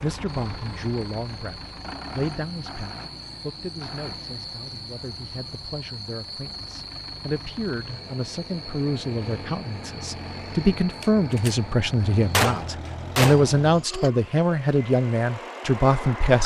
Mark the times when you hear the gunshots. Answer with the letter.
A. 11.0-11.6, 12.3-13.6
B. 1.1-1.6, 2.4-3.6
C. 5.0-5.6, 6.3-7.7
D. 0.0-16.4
A.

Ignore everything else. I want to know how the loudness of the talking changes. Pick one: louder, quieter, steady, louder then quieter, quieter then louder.
quieter then louder.